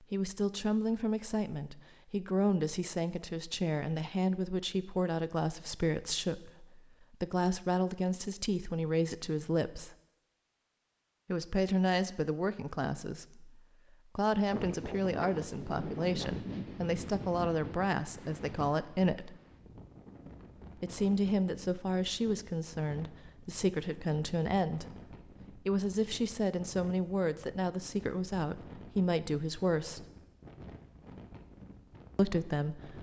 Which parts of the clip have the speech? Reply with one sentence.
The speech can be heard from 0.0 to 9.9 s, from 11.2 to 19.4 s, from 20.8 to 24.9 s, from 25.6 to 30.1 s and from 32.1 to 32.9 s.